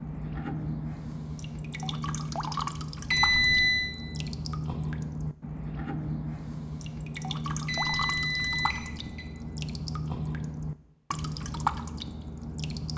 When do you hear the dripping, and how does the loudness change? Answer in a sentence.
The dripping can be heard from 0.0 to 12.9 s, at a steady volume.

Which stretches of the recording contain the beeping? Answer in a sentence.
The beeping can be heard from 3.1 to 4.0 s and from 7.7 to 9.2 s.